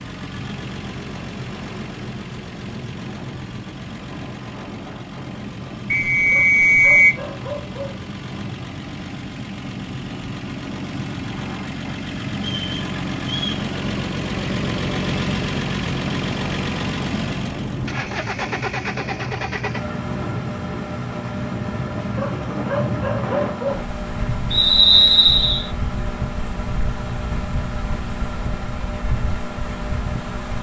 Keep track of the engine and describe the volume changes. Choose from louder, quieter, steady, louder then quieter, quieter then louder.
louder then quieter.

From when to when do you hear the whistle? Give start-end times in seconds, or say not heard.
5.9-7.2, 12.4-13.7, 24.5-25.7.